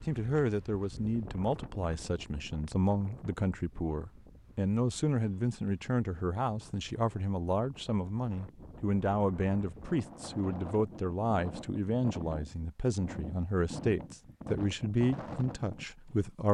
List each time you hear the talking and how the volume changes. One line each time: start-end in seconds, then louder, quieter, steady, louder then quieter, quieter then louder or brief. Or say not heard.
0.0-16.4 steady.